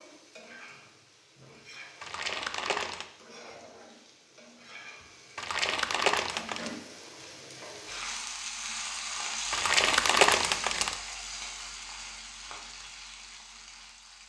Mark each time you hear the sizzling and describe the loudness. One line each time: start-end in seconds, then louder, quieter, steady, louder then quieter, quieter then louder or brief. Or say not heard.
0.0-14.2 louder then quieter.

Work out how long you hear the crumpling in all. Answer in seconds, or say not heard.
4 s.